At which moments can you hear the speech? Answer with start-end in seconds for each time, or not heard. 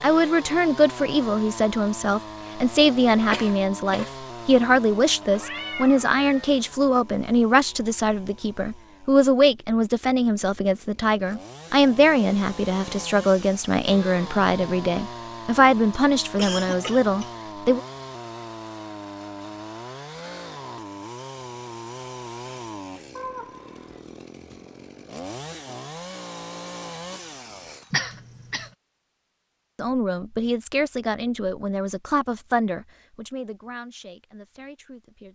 0.0-17.8, 29.8-35.2.